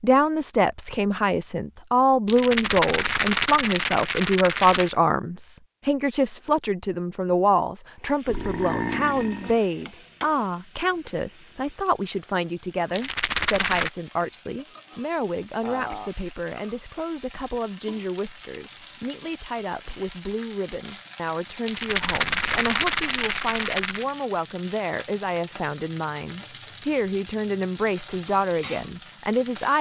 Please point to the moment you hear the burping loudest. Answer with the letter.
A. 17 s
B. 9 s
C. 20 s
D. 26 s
B.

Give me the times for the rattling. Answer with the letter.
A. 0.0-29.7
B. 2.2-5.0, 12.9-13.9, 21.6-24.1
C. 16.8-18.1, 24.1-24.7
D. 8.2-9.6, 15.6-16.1
B.